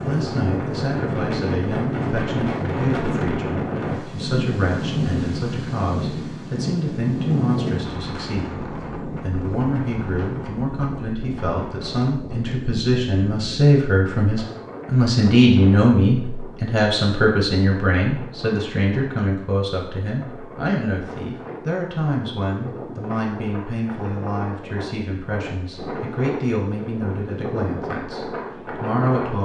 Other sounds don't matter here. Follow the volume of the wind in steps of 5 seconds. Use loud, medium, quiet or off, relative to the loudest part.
loud, loud, medium, quiet, medium, medium.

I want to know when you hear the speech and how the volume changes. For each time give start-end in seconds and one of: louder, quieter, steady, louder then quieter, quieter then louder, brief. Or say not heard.
0.0-29.3 louder then quieter.